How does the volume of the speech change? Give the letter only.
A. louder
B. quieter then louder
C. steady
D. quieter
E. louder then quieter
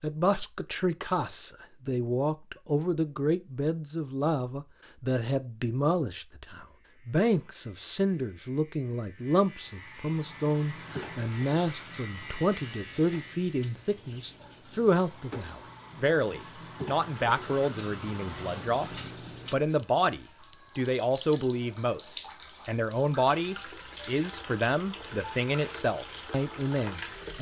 C.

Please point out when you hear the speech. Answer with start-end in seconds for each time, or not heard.
0.0-27.3.